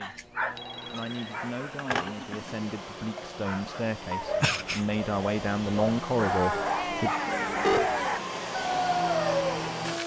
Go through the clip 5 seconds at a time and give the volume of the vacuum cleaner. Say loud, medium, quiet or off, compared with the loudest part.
medium, loud.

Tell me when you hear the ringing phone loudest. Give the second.
8 s.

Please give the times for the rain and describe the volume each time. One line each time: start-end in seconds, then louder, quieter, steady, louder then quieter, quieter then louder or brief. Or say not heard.
not heard.